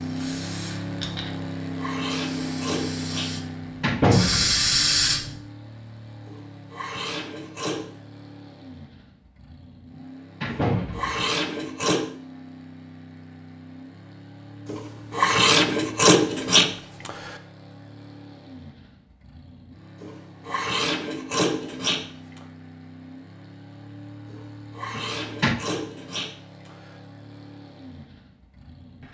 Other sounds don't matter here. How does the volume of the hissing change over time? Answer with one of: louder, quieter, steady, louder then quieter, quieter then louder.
quieter then louder.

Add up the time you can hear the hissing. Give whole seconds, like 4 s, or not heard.
5 s.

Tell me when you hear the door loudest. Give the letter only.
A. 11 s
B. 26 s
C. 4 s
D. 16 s
C.